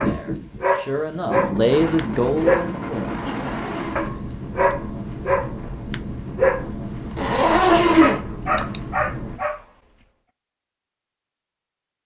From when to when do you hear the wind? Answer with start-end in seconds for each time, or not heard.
0.0-9.4.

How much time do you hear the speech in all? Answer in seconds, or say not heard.
3 s.